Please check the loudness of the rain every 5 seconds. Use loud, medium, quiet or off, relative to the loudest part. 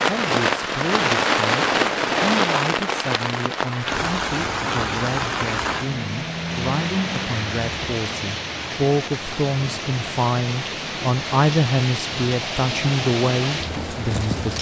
loud, medium, medium.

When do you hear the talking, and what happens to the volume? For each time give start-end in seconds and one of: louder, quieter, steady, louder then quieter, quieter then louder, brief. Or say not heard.
0.0-14.5 louder.